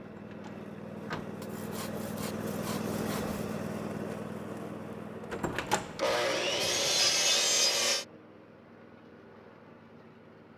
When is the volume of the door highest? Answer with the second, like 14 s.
6 s.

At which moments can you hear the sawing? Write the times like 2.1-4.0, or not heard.
1.4-3.4, 6.0-8.1.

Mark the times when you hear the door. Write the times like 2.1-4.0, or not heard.
0.1-1.2, 5.3-6.2.